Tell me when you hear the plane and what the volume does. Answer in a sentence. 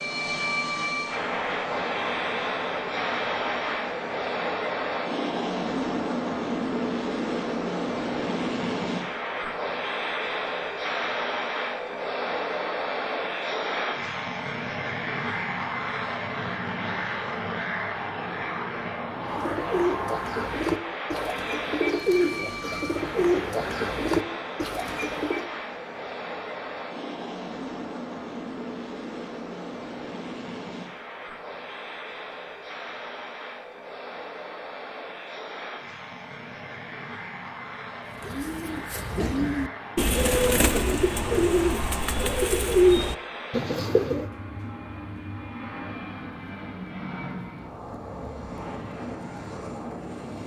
The plane can be heard from 0.0 to 50.4 s, getting quieter.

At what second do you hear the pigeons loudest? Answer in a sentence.
The loudest moment of the pigeons is at 43 seconds.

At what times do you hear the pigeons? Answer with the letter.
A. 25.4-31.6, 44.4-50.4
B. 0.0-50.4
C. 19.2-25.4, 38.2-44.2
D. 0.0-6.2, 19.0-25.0
C.